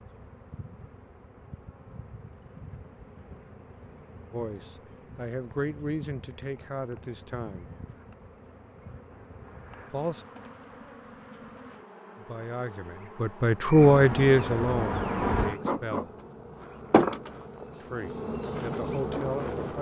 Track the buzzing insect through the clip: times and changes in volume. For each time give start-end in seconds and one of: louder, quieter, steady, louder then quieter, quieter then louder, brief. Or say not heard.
0.0-19.7 louder.